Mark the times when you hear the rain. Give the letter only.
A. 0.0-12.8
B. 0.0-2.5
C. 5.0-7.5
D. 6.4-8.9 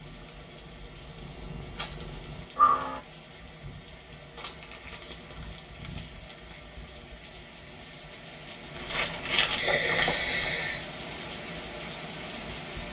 A.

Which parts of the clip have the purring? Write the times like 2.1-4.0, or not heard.
0.0-2.5.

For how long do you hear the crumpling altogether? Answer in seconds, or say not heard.
6 s.